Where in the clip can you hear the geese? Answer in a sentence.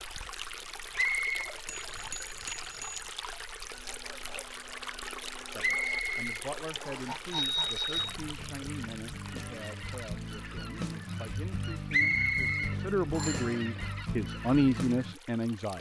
The geese can be heard from 3.6 to 15.2 s.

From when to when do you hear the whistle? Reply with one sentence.
You can hear the whistle from 0.9 to 1.4 s, from 5.6 to 7.2 s and from 11.9 to 13.4 s.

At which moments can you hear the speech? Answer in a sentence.
You can hear the speech from 5.5 to 15.7 s.